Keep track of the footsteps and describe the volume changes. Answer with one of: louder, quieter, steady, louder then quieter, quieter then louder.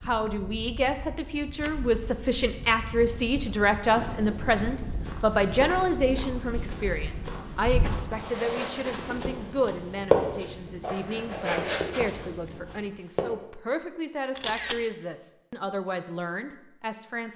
louder then quieter.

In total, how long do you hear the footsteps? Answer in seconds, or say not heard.
9 s.